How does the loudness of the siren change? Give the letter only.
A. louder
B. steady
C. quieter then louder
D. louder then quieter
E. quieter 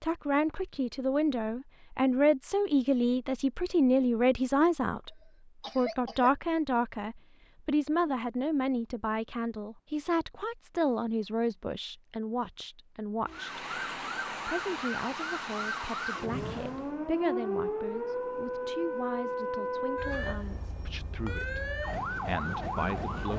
B.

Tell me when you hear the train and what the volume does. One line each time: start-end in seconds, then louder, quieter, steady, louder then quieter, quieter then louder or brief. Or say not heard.
not heard.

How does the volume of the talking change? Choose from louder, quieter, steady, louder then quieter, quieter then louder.
quieter.